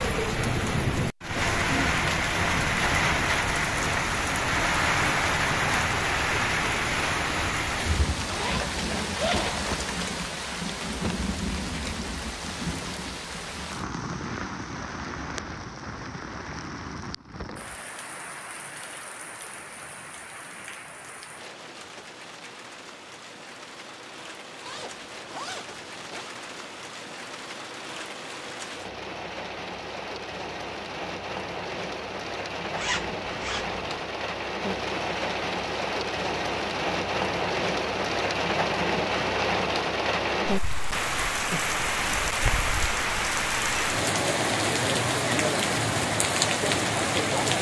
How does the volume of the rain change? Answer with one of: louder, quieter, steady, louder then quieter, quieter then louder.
quieter then louder.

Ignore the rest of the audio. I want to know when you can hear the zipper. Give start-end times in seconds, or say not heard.
8.2-9.6, 24.6-26.4, 32.8-33.8.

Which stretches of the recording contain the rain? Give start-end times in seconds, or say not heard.
0.0-47.5.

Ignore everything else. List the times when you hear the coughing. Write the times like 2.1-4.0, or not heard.
not heard.